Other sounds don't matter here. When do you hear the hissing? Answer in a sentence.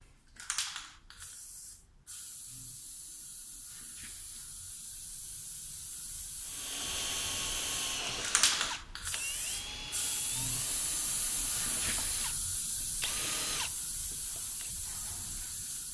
You can hear the hissing from 0.0 to 15.8 s.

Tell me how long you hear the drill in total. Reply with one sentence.
You can hear the drill for 8 seconds altogether.